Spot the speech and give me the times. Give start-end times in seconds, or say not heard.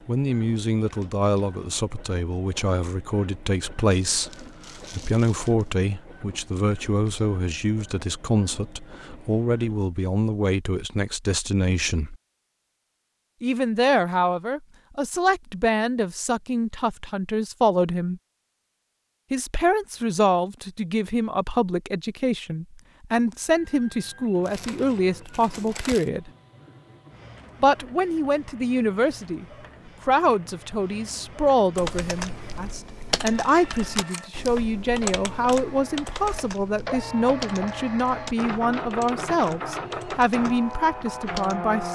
0.1-12.2, 13.4-18.2, 19.3-26.3, 27.6-29.4, 30.1-41.8.